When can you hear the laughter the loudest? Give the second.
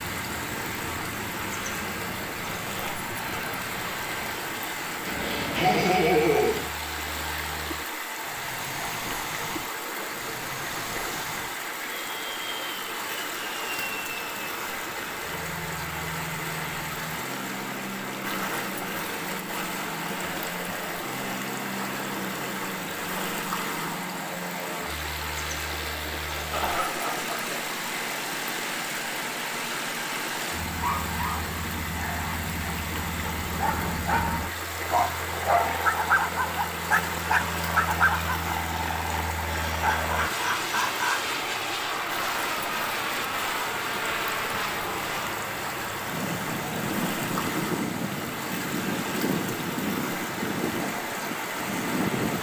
6 s.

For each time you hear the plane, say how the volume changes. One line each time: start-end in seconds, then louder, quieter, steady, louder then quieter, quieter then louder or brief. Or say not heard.
0.0-52.3 louder.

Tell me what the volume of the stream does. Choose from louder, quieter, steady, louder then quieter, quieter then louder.
steady.